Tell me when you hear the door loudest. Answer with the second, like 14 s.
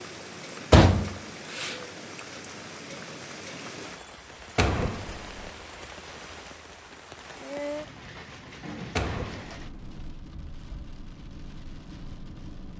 1 s.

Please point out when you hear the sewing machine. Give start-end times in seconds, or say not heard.
not heard.